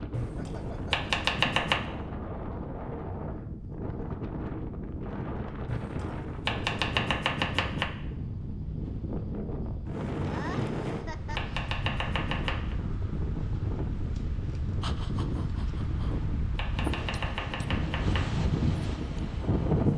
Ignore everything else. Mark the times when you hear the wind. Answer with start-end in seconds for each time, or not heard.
0.0-19.9.